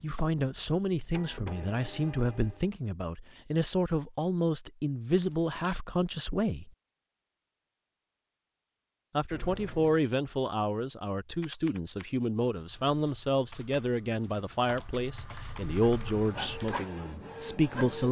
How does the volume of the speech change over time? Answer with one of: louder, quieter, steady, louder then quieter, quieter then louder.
steady.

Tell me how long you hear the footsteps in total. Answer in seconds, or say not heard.
not heard.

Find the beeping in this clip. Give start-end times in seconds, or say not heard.
not heard.